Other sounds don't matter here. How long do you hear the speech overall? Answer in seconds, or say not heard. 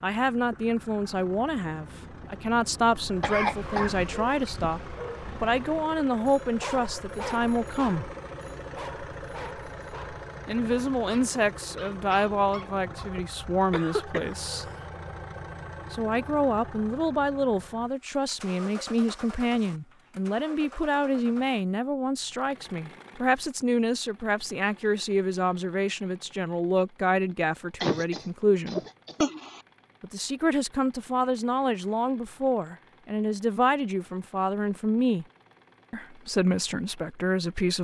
32 s.